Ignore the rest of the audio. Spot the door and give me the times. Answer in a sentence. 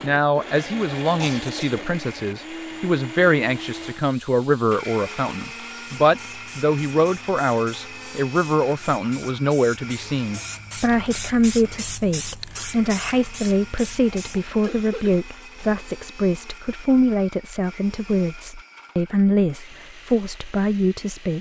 You can't hear the door here.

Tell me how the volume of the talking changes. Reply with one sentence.
The loudness of the talking stays about the same.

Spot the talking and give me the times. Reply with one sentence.
The talking can be heard from 0.0 to 21.3 s.